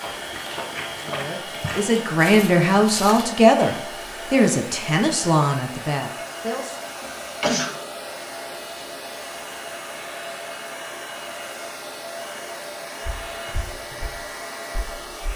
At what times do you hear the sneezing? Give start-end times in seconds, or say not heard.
7.4-8.0.